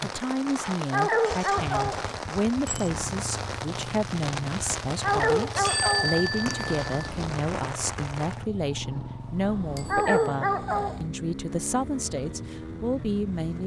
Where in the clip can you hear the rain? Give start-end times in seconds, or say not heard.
0.0-8.5.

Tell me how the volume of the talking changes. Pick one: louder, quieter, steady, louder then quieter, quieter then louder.
steady.